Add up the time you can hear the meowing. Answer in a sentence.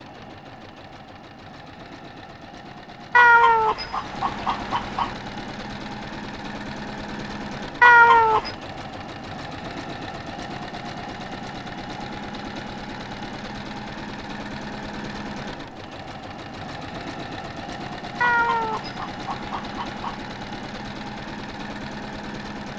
The meowing can be heard for 5 seconds in total.